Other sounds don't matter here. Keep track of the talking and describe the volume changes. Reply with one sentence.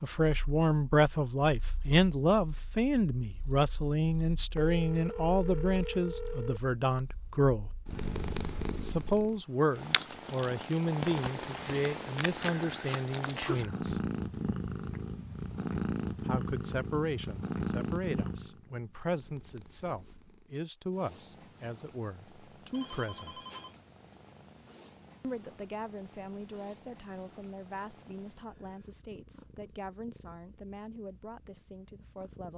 The volume of the talking goes down.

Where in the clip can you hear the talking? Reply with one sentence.
The talking can be heard from 0.0 to 7.7 s, from 8.8 to 14.0 s, from 16.2 to 23.4 s and from 25.2 to 32.5 s.